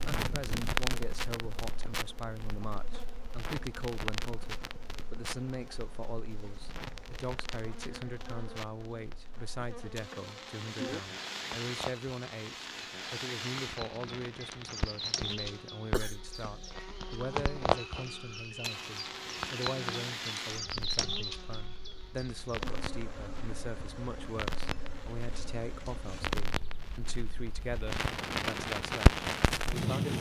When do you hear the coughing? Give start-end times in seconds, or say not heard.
15.9-16.8.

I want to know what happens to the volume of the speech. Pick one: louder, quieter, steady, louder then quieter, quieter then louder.
steady.